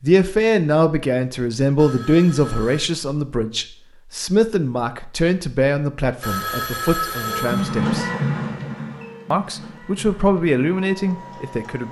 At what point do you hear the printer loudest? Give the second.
8 s.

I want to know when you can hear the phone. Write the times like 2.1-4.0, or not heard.
1.8-2.9, 6.2-7.9.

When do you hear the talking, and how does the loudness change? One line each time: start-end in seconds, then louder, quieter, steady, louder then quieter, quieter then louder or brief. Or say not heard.
0.0-8.1 quieter
9.3-11.8 brief.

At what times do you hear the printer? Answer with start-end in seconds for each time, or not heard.
7.2-11.8.